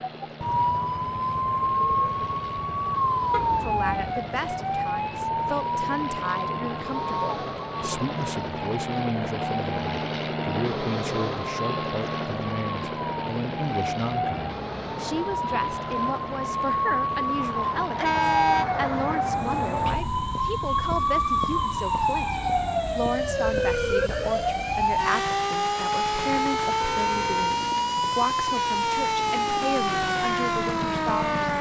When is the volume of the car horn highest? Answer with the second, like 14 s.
18 s.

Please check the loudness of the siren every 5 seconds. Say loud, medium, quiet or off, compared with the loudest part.
loud, medium, medium, loud, loud, loud, loud.